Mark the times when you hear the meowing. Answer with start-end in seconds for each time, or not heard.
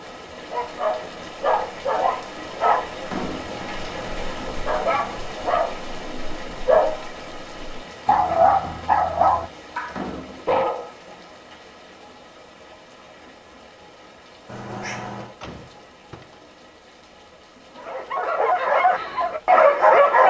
3.4-5.3, 14.4-15.3.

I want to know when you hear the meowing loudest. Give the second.
15 s.